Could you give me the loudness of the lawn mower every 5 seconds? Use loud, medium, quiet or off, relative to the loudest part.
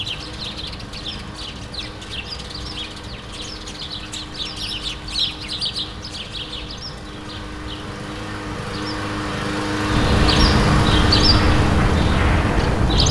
quiet, medium, loud.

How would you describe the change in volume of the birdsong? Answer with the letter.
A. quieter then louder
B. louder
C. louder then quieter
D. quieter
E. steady
B.